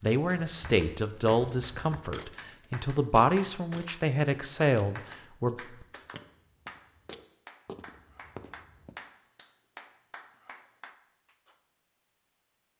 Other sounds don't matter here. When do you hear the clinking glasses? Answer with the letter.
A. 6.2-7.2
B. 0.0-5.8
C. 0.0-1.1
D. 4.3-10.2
A.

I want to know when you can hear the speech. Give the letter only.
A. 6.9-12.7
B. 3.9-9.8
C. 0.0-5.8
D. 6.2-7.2
C.